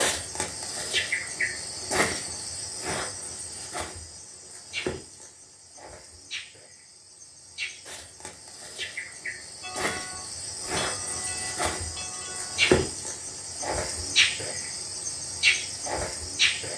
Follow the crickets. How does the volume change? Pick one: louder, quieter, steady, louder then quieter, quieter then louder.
quieter then louder.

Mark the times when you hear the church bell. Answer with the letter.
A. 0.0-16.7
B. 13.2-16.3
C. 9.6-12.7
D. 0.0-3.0
C.